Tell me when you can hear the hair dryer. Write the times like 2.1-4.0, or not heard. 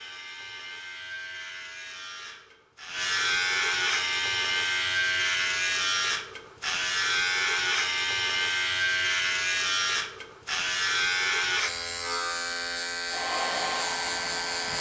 13.1-14.7.